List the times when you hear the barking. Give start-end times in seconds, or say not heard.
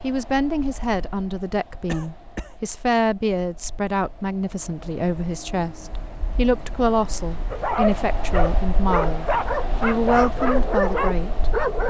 7.5-11.8.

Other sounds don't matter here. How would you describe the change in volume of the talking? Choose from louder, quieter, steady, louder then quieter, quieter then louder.
steady.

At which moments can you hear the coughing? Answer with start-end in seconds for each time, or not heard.
1.9-2.5.